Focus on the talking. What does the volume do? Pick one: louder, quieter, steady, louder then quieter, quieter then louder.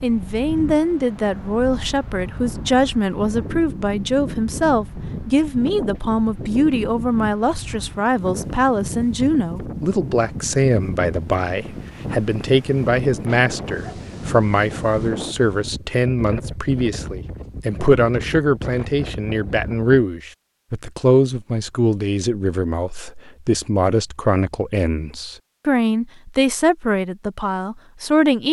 steady.